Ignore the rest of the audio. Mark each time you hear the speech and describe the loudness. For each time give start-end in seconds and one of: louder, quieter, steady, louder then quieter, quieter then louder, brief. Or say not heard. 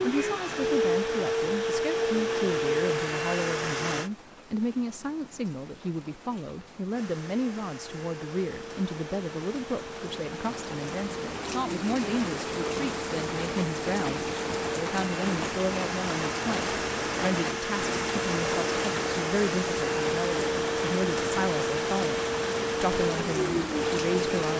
0.0-24.5 steady.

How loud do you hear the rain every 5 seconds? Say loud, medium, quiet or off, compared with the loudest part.
quiet, quiet, loud, loud, loud.